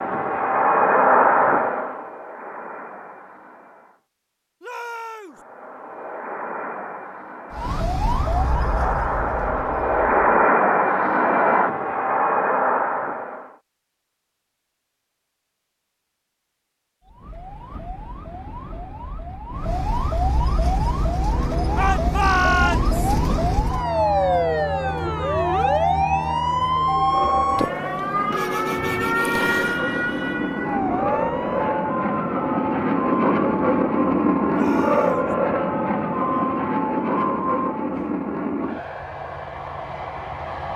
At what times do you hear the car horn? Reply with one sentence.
The car horn can be heard from 28.3 to 29.8 s.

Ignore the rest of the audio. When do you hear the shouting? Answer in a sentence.
You can hear the shouting from 4.6 to 5.4 s, from 21.8 to 22.9 s and from 34.5 to 35.4 s.